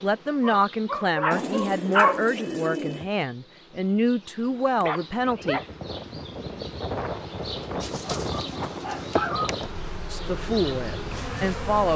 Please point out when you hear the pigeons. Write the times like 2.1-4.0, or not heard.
1.3-3.1, 7.8-9.3.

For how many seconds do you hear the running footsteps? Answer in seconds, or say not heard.
not heard.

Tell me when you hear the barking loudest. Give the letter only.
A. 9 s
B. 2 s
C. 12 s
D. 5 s
B.